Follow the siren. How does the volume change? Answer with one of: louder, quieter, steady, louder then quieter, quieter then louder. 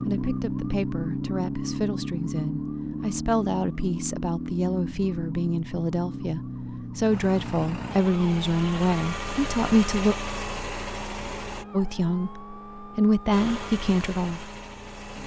quieter.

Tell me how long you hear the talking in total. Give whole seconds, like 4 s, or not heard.
13 s.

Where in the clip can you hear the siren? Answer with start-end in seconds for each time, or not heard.
0.0-15.2.